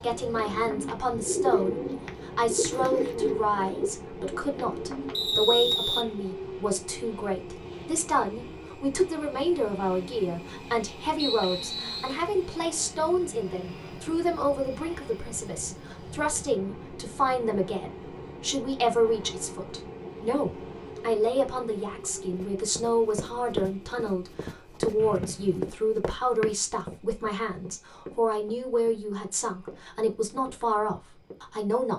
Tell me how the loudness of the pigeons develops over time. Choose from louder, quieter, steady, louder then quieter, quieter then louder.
louder then quieter.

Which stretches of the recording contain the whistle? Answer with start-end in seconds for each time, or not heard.
5.1-6.0, 11.2-12.2, 24.9-25.8.